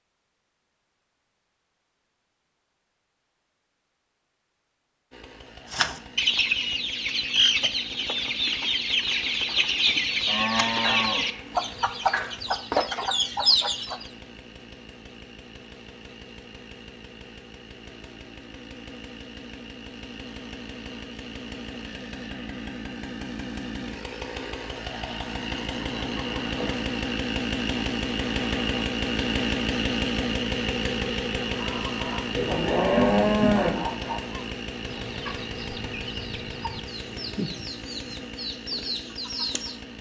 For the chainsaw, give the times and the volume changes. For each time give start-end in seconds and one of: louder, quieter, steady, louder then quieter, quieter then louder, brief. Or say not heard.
5.1-39.9 louder then quieter.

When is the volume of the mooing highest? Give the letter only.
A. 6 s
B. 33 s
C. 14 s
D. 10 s
B.